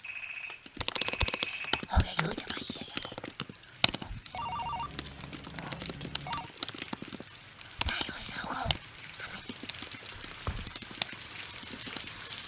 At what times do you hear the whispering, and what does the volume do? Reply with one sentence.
The whispering can be heard from 0.0 to 4.4 s, getting louder then quieter; and briefly from 7.7 to 9.5 s.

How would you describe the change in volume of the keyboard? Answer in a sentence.
The volume of the keyboard goes down.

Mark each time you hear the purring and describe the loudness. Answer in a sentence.
The purring can't be heard in this clip.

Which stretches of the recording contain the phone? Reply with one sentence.
You can hear the phone from 0.0 to 1.9 s, from 4.3 to 6.5 s and from 10.2 to 10.8 s.